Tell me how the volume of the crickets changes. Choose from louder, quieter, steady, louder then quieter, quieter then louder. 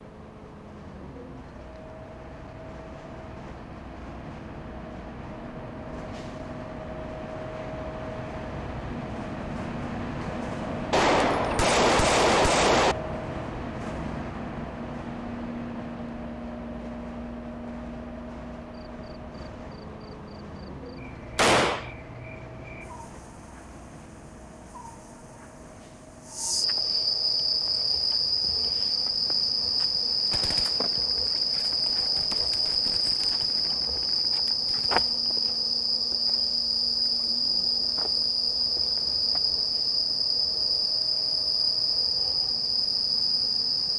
louder.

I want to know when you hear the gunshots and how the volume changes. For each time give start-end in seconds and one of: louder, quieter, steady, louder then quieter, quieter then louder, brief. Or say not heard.
10.9-12.9 brief
21.4-21.9 brief
30.3-35.0 steady.